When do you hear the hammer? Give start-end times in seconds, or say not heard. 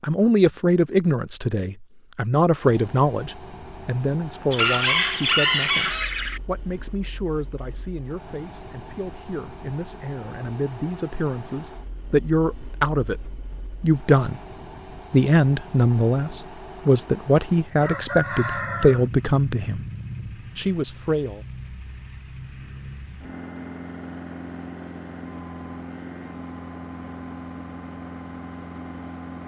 not heard.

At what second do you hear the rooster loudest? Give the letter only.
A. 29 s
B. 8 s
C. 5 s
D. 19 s
C.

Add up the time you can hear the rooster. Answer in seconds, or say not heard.
3 s.